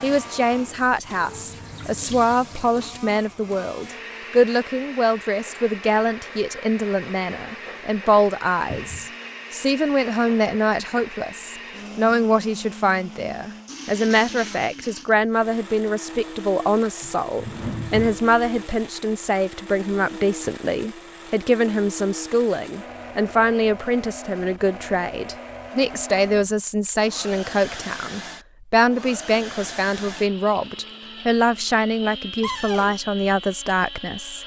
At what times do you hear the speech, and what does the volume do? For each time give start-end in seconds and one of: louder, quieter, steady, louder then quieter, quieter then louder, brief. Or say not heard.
0.0-34.4 steady.